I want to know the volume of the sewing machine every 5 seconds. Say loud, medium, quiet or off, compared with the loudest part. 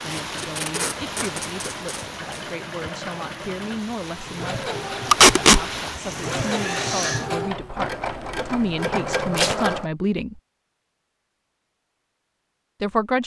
medium, loud, off.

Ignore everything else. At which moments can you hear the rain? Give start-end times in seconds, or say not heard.
0.0-7.3.